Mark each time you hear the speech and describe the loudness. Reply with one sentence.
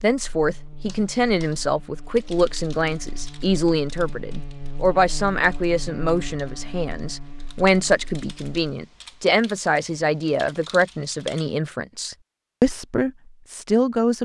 The speech can be heard from 0.0 to 14.2 s, at a steady volume.